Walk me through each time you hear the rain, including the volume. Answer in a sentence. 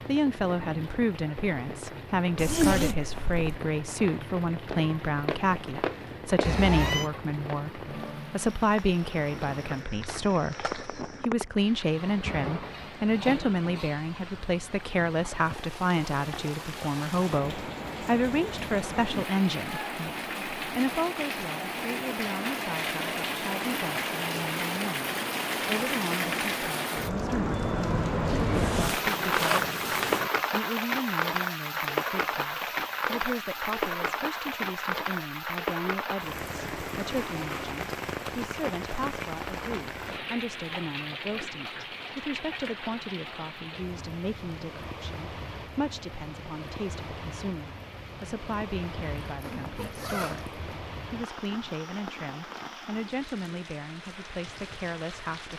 You can hear the rain from 0.0 to 55.5 s, getting louder then quieter.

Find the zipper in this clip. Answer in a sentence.
The zipper can be heard from 2.4 to 3.5 s, from 28.2 to 30.3 s and from 49.0 to 50.8 s.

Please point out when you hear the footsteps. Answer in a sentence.
The footsteps can be heard from 4.7 to 11.2 s.